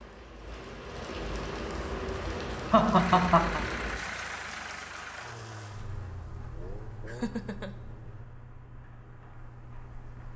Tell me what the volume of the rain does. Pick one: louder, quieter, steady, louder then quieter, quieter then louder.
quieter.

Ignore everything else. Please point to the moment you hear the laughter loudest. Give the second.
3 s.